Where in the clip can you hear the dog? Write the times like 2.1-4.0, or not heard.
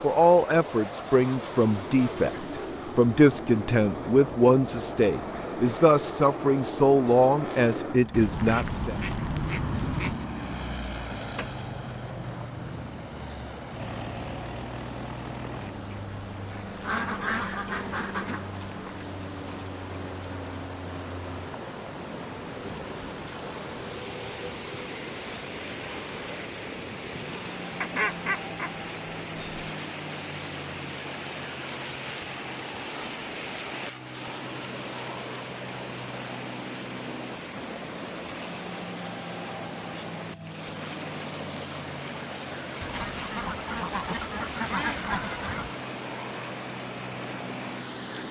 not heard.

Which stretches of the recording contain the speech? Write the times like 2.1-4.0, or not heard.
0.0-8.9.